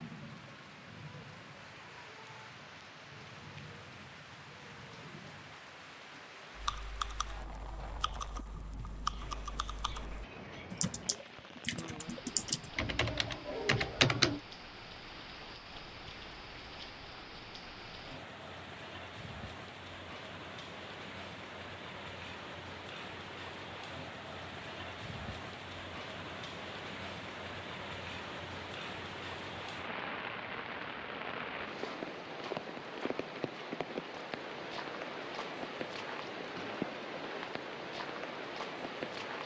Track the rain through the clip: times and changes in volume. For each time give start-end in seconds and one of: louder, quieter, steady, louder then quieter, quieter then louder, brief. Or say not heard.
0.0-39.4 louder.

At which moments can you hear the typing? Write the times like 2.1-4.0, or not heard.
6.5-14.4.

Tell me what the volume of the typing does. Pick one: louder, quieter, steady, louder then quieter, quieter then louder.
louder.